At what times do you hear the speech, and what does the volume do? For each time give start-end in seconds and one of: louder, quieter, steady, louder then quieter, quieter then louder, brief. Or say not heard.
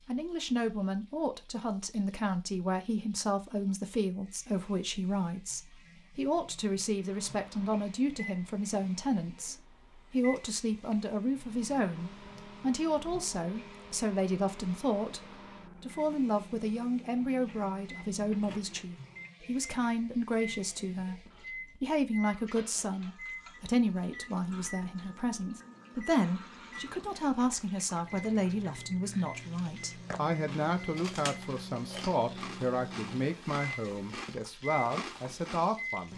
0.1-36.1 steady.